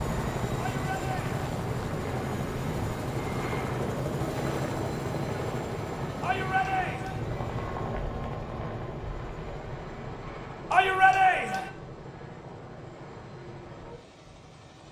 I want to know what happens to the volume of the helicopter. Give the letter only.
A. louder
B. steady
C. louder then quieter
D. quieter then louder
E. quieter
E.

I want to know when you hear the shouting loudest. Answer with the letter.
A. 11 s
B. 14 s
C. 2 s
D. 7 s
A.